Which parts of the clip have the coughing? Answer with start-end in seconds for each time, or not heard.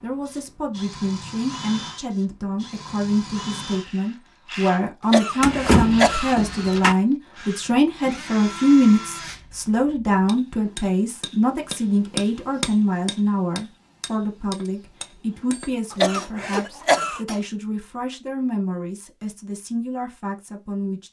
5.1-6.8, 15.9-17.2.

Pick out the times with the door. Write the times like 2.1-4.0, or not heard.
5.4-7.0.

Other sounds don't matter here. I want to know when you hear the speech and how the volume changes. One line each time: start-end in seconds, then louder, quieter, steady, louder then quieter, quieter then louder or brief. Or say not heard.
0.0-21.0 louder then quieter.